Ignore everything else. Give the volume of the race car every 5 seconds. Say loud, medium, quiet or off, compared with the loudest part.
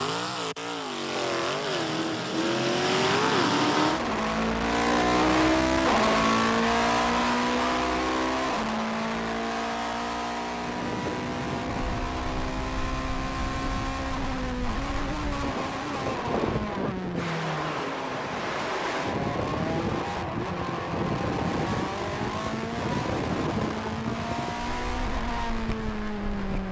loud, loud, medium, medium, medium, medium.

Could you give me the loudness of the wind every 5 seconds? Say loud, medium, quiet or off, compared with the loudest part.
off, off, medium, loud, loud, medium.